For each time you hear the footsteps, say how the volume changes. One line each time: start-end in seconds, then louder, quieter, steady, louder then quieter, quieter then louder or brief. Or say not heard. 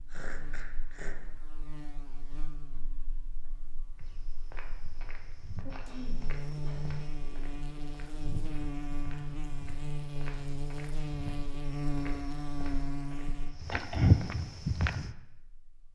4.0-15.2 louder.